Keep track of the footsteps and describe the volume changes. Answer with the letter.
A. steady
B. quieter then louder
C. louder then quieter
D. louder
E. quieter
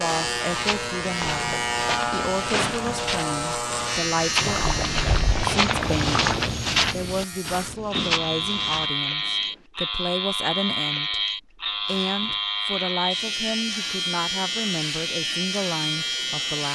C.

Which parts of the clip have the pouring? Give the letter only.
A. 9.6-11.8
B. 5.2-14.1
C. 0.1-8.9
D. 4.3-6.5
D.